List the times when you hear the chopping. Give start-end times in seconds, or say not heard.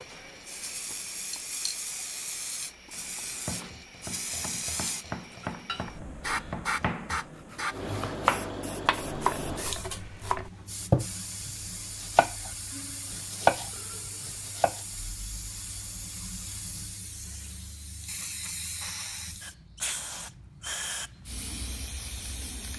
3.5-12.5, 13.1-14.8.